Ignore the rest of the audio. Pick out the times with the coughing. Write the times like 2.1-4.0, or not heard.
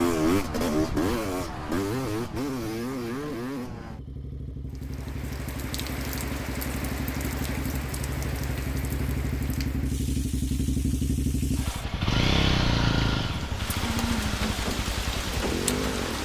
not heard.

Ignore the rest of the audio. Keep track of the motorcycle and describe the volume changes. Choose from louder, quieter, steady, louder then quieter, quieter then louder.
quieter then louder.